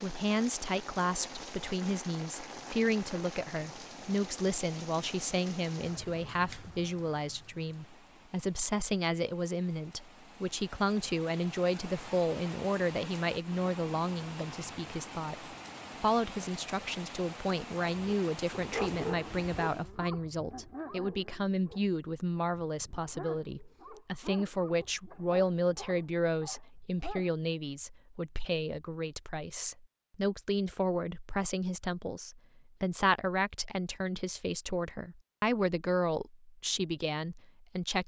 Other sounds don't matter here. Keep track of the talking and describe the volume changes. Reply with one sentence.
The loudness of the talking stays about the same.